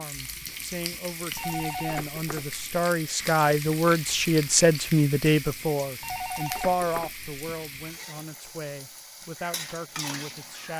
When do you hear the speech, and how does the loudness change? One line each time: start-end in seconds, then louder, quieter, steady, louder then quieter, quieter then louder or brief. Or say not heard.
0.0-10.7 louder then quieter.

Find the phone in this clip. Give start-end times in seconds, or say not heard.
1.4-2.8, 6.0-7.2.